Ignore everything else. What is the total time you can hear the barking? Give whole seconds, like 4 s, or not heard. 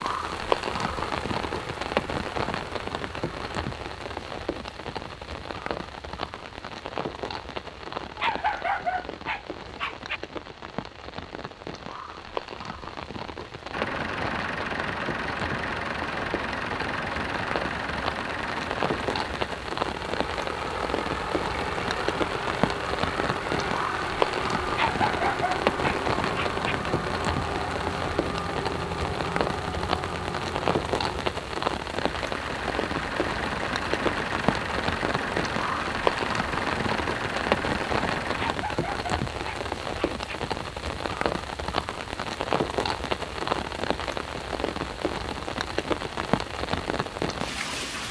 6 s.